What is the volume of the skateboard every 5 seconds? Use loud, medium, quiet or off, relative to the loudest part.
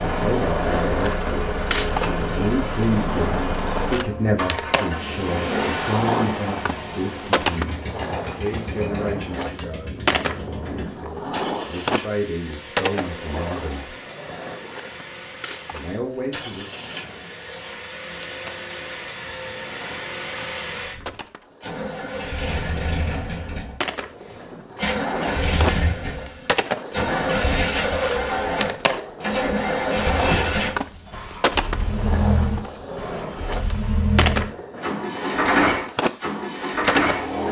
loud, loud, loud, quiet, medium, loud, loud, loud.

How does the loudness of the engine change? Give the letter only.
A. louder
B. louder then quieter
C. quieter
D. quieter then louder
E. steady
D.